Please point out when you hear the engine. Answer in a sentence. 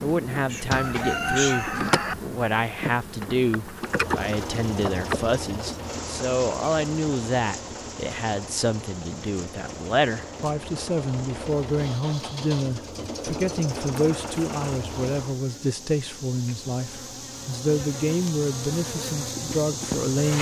The engine can be heard from 3.8 to 15.4 s.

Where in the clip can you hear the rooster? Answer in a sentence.
The rooster can be heard from 0.5 to 2.1 s.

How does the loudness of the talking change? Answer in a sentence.
The loudness of the talking stays about the same.